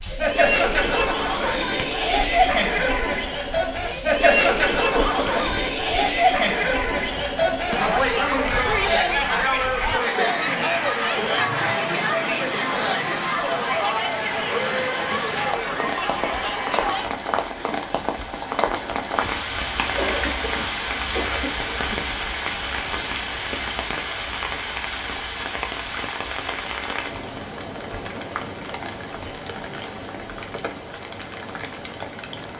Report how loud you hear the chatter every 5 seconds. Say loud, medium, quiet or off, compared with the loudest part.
loud, loud, loud, medium, off, off, off.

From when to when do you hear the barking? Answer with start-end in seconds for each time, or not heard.
not heard.